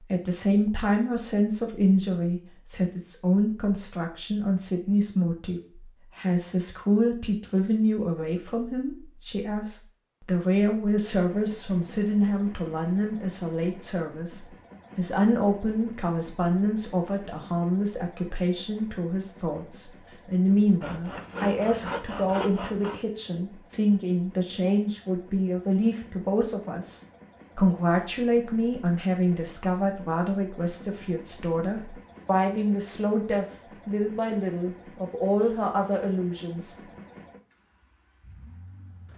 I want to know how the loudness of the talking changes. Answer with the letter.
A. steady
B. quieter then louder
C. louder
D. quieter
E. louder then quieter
A.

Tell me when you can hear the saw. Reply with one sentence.
You can hear the saw from 20.8 to 23.0 s.